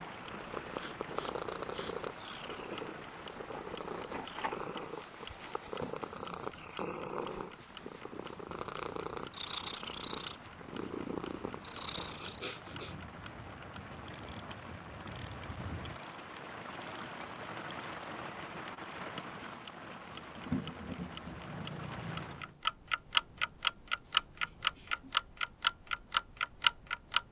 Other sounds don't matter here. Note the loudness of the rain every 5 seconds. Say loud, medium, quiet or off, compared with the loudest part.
medium, medium, medium, loud, loud, off.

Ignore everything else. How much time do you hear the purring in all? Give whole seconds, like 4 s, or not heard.
16 s.